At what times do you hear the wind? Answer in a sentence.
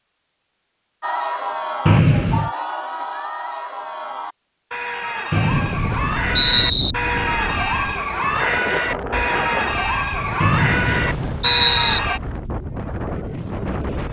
You can hear the wind from 5.5 to 14.0 s.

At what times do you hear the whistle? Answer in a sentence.
The whistle can be heard from 1.9 to 2.5 s, from 5.3 to 7.0 s and from 10.4 to 12.0 s.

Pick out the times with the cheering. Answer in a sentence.
The cheering can be heard from 1.0 to 12.2 s.